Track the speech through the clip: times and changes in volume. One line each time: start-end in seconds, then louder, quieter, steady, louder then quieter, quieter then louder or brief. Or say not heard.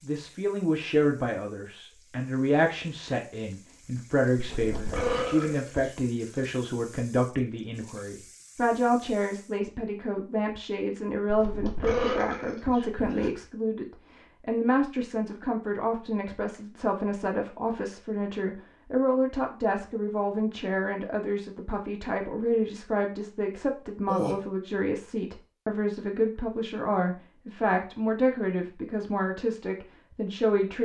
0.0-30.7 steady.